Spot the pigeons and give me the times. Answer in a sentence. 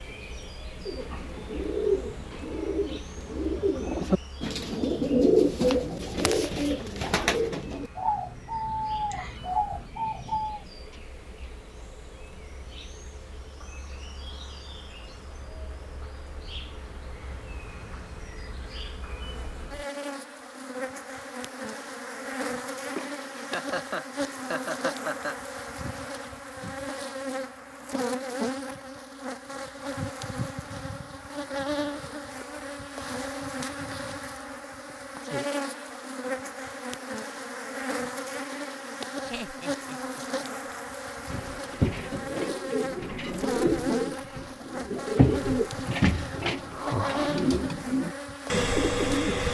The pigeons can be heard from 0.8 to 10.7 s and from 41.3 to 49.4 s.